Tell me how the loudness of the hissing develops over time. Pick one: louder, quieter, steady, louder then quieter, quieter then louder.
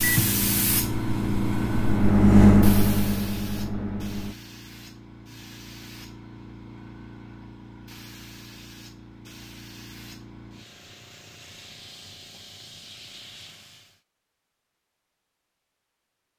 quieter.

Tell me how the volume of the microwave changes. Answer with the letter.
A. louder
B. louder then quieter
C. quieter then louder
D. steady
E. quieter
B.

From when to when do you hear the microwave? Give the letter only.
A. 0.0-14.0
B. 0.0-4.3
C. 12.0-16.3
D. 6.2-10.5
B.